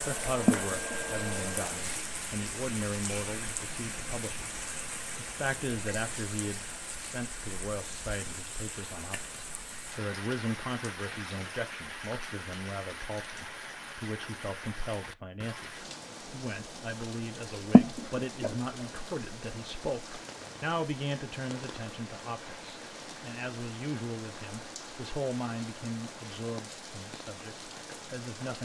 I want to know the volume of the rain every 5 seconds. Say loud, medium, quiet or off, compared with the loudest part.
loud, loud, loud, medium, medium, medium.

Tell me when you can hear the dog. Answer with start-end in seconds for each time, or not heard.
not heard.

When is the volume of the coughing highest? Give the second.
18 s.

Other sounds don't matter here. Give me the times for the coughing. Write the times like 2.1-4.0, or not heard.
0.5-0.9, 17.7-18.5.